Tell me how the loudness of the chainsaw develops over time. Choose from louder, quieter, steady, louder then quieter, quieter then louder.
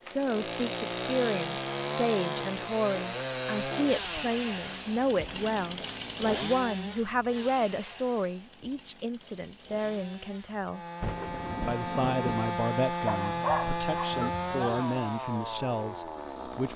quieter then louder.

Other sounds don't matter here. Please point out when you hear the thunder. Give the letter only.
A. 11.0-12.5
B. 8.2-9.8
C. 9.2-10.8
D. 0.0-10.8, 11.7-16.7
A.